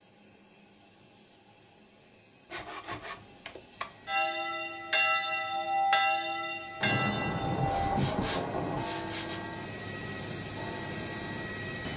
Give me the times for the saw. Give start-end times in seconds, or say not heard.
2.5-4.1, 7.6-9.4.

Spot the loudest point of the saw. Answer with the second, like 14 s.
8 s.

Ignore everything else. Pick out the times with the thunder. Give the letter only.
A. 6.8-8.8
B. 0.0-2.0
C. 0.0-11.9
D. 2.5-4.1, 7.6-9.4
A.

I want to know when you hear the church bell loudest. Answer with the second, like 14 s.
6 s.